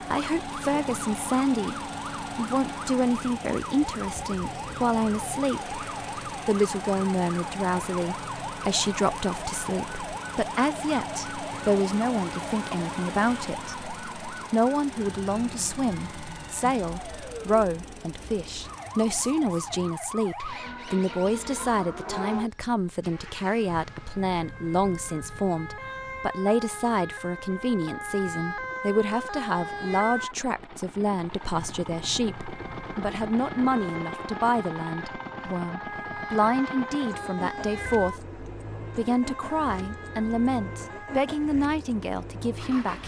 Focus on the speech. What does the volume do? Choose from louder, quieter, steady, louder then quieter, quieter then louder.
steady.